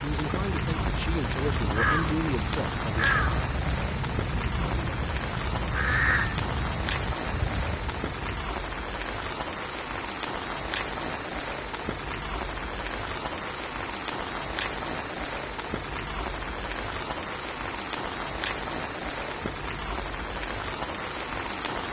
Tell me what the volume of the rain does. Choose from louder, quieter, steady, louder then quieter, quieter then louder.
steady.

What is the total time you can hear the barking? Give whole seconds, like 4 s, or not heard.
not heard.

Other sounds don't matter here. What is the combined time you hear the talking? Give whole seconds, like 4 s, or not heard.
3 s.